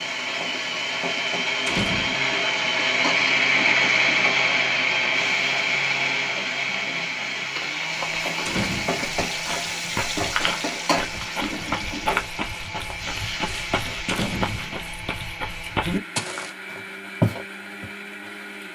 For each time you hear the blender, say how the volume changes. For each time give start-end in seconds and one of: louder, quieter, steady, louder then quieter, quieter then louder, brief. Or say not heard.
0.0-18.7 quieter.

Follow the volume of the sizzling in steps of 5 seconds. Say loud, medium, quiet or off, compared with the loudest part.
loud, loud, loud, off.